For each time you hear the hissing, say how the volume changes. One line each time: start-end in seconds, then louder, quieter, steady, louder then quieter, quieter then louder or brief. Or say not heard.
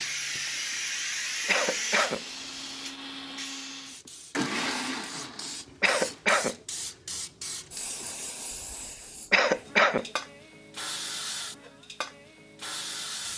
0.0-13.3 quieter then louder.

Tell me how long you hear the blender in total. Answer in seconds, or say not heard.
6 s.